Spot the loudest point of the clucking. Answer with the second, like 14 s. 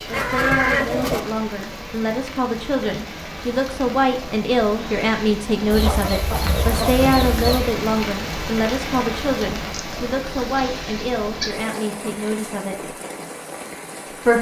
1 s.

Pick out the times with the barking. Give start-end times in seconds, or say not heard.
not heard.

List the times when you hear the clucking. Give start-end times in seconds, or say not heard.
0.1-1.2, 5.7-7.8, 9.7-11.8.